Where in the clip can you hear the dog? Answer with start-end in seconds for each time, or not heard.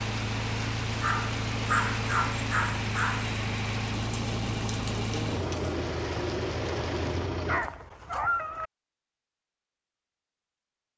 1.0-3.4, 7.5-8.7.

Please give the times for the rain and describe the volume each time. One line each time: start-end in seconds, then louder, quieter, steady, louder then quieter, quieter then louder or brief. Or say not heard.
0.0-7.3 steady.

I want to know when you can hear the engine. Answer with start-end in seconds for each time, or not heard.
0.0-7.7.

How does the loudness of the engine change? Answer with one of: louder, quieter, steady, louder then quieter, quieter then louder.
steady.